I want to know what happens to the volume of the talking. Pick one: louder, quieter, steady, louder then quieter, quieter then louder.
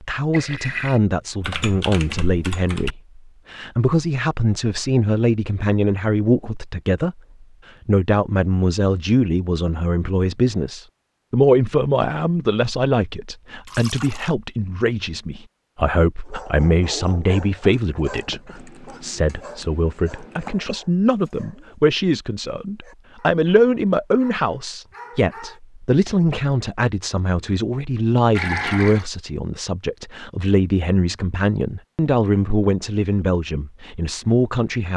steady.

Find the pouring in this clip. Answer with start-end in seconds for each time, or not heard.
0.3-1.0, 13.7-14.3, 28.4-29.1.